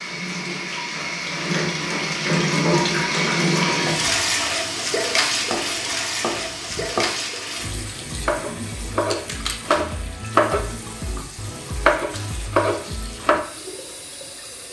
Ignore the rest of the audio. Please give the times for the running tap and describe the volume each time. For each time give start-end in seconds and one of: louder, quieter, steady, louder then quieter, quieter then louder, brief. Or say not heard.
0.0-14.6 quieter.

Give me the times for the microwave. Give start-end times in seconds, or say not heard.
not heard.